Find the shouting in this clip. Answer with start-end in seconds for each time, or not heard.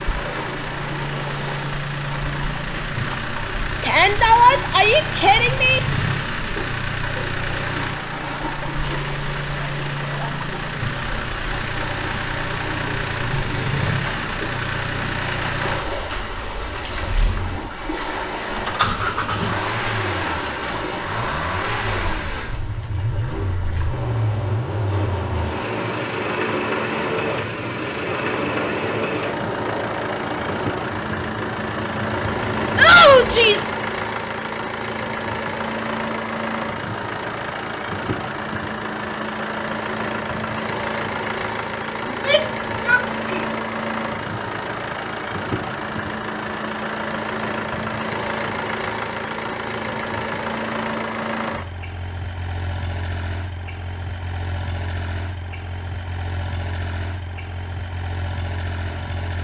3.8-5.8, 32.8-33.7, 42.0-43.5.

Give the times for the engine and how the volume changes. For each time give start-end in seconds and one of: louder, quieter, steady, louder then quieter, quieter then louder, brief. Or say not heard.
0.0-59.4 steady.